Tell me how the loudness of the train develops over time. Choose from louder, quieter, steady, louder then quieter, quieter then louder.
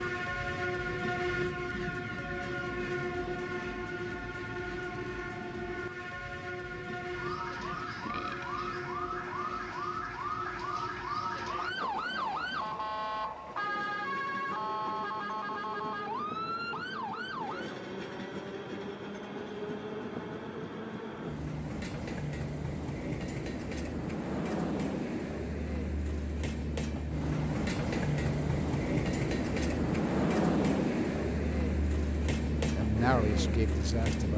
quieter then louder.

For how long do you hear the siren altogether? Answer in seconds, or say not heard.
11 s.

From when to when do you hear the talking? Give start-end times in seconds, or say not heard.
32.8-34.3.